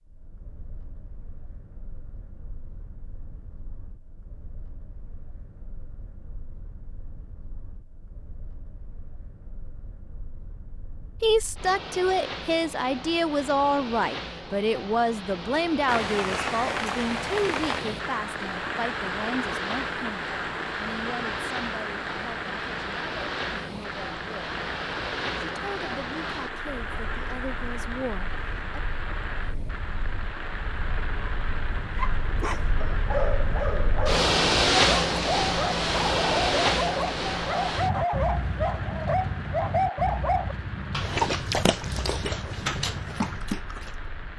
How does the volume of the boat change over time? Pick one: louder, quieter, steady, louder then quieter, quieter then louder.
louder.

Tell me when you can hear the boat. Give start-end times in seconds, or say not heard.
0.0-44.3.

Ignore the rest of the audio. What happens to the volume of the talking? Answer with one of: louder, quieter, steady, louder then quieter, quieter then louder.
quieter.